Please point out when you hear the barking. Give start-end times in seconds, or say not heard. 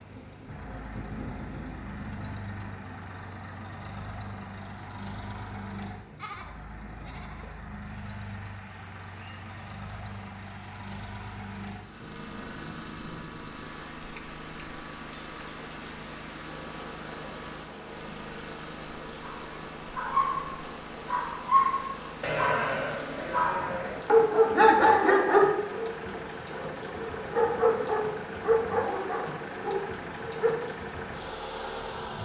19.2-30.6.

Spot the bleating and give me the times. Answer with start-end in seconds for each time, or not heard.
6.2-7.6, 22.2-24.1.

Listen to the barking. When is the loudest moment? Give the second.
25 s.